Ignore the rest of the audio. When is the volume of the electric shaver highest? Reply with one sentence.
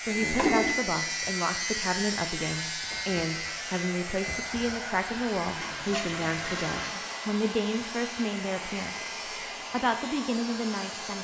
The loudest moment of the electric shaver is at 1 second.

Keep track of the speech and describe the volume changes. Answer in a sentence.
The volume of the speech stays about the same.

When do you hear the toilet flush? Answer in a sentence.
The toilet flush can be heard from 0.1 to 0.8 s and from 5.6 to 7.0 s.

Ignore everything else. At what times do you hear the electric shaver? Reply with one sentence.
The electric shaver can be heard from 0.0 to 11.1 s.